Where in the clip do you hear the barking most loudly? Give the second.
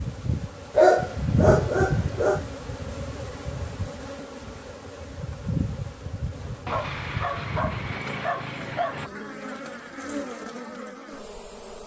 1 s.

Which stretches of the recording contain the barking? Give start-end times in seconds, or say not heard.
0.8-2.4, 6.7-9.1.